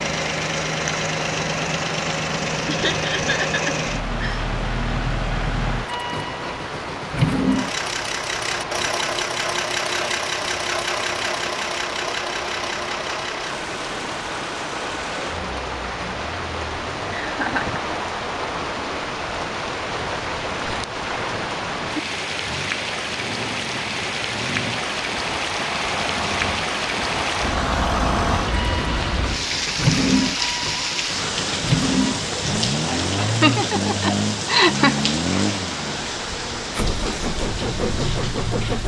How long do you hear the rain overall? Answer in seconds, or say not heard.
39 s.